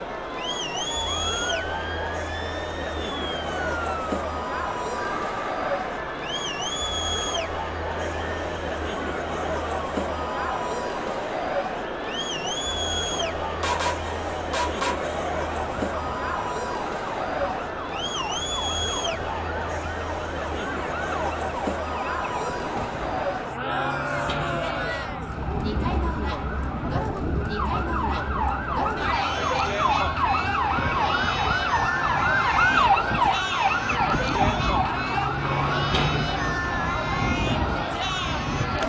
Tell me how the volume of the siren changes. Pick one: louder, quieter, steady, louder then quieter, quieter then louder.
louder.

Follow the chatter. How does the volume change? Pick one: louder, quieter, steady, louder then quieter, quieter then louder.
steady.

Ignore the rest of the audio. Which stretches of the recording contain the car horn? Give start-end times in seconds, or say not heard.
13.6-15.2.